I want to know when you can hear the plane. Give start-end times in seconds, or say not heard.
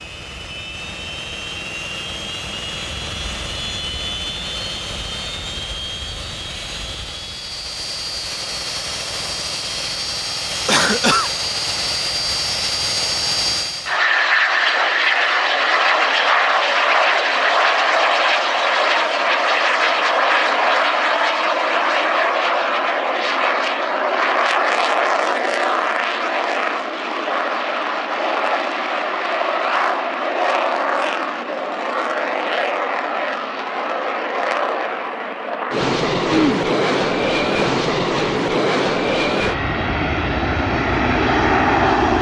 0.0-42.1.